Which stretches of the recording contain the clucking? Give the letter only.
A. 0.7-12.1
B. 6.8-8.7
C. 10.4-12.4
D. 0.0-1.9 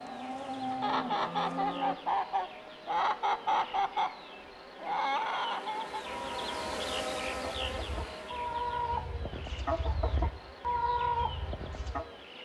A.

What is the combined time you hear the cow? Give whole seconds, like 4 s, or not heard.
2 s.